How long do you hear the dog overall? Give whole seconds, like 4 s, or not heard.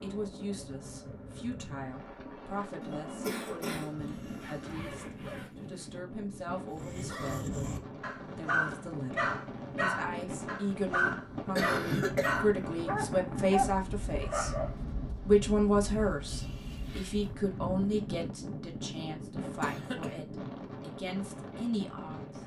8 s.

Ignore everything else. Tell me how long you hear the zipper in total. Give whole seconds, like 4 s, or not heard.
3 s.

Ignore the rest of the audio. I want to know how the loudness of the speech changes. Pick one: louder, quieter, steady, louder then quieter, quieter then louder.
louder then quieter.